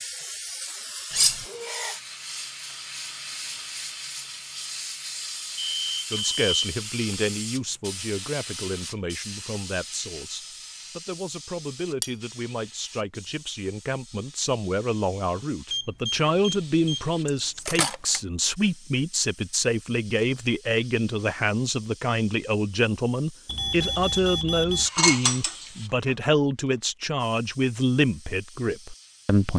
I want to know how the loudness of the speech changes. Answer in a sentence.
The loudness of the speech goes up.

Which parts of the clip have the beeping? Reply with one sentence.
You can hear the beeping from 5.5 to 7.2 s, from 15.7 to 17.1 s and from 23.4 to 24.9 s.